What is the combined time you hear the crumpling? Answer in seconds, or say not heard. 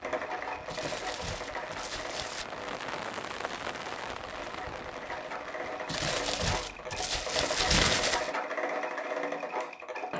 4 s.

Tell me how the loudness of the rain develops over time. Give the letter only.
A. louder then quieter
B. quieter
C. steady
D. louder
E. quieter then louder
A.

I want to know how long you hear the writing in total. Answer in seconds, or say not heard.
not heard.